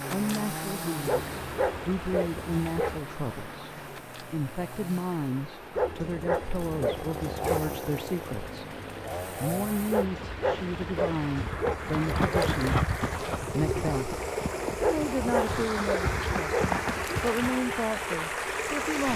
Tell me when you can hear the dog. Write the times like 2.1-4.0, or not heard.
1.1-3.0, 5.8-7.8, 9.9-12.6, 14.8-16.8.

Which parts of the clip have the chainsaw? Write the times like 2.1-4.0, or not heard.
0.0-10.1.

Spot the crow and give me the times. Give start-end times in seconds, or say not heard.
not heard.